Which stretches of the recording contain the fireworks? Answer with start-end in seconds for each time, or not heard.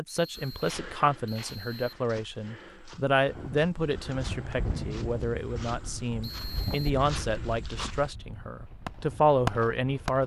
8.8-10.2.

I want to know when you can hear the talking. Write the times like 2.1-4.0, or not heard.
0.0-10.2.